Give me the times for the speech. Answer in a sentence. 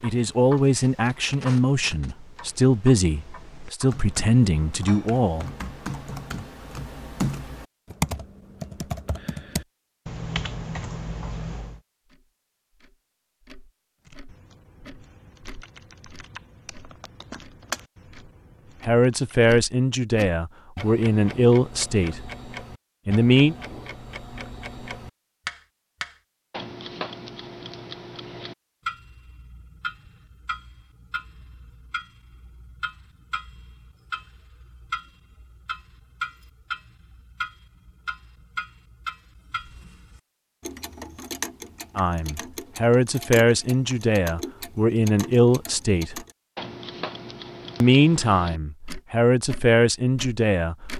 You can hear the speech from 0.0 to 5.5 s, from 18.9 to 22.2 s, from 23.1 to 23.6 s, from 42.0 to 46.2 s and from 47.8 to 50.8 s.